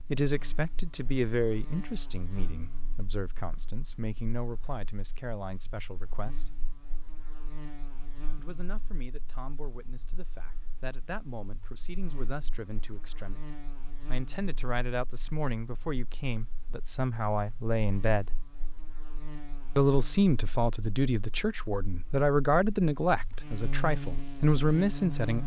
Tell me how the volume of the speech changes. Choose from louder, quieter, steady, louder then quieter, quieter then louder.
quieter then louder.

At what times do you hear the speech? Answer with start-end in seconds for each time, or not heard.
0.1-6.5, 8.3-18.3, 19.8-25.4.